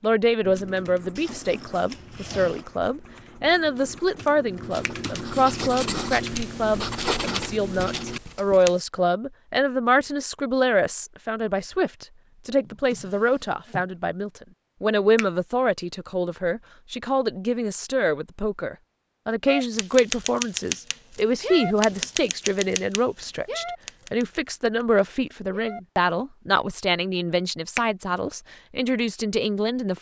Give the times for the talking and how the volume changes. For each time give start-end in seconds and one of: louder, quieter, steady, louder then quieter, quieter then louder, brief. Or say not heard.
0.0-29.9 steady.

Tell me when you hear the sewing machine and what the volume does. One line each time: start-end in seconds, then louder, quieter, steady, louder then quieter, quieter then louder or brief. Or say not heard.
not heard.